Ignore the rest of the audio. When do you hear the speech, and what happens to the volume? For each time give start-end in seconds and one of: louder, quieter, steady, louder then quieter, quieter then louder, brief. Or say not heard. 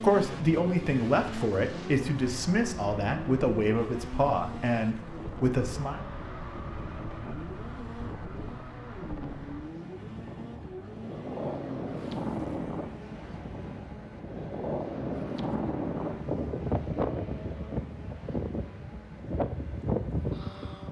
0.0-6.0 steady.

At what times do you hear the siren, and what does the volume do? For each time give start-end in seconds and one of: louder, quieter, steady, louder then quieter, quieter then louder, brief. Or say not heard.
not heard.